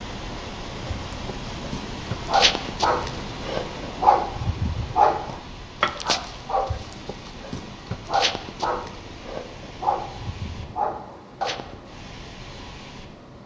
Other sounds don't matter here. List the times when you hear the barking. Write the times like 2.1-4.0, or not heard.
0.8-11.8.